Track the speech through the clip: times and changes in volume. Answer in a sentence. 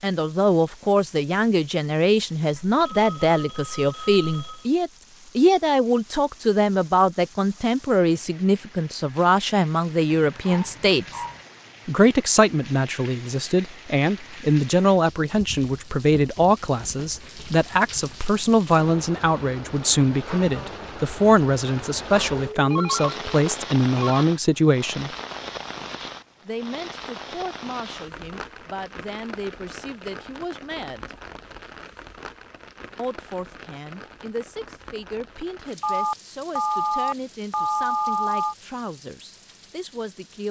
You can hear the speech from 0.0 to 11.2 s, at a steady volume; from 11.8 to 25.1 s, at a steady volume; from 26.4 to 31.1 s, at a steady volume; and from 33.0 to 40.4 s, at a steady volume.